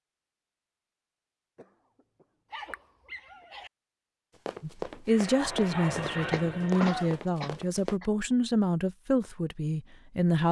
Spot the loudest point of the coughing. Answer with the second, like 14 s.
7 s.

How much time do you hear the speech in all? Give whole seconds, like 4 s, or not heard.
6 s.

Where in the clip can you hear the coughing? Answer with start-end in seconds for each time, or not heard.
1.6-3.5, 6.3-8.1.